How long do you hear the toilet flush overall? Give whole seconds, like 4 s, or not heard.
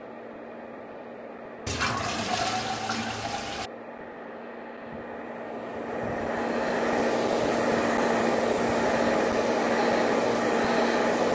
2 s.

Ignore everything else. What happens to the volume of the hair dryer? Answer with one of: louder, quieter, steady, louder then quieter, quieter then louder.
louder.